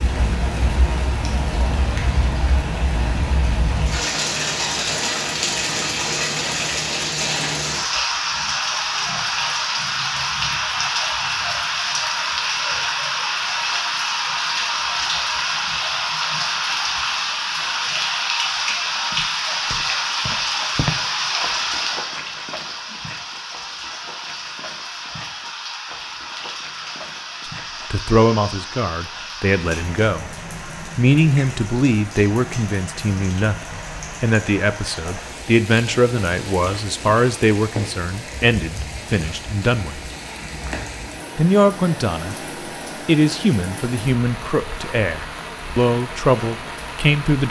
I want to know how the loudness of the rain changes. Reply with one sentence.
The volume of the rain goes down.